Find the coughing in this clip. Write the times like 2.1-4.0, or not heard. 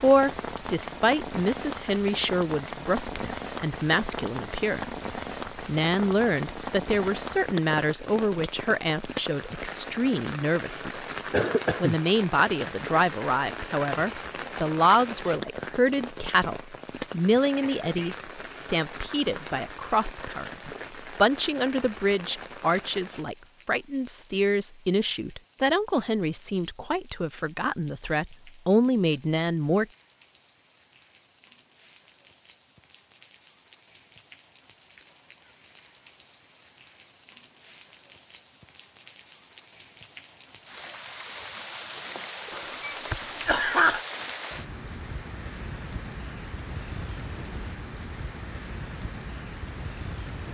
11.3-11.9, 17.6-18.2, 42.5-44.0.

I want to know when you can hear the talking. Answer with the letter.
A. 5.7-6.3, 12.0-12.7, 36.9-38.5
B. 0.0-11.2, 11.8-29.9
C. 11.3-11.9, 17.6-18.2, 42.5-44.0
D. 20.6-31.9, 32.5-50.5
B.